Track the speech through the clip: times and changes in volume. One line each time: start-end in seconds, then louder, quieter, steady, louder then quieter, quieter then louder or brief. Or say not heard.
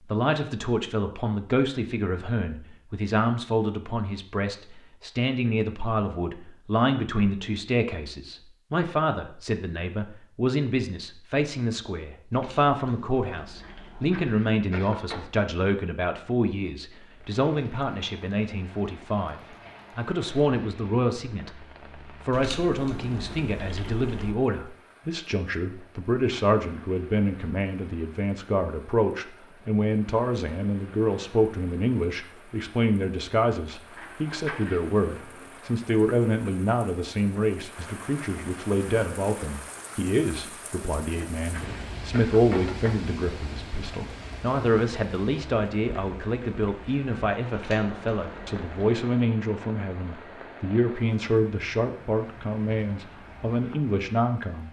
0.0-54.6 steady.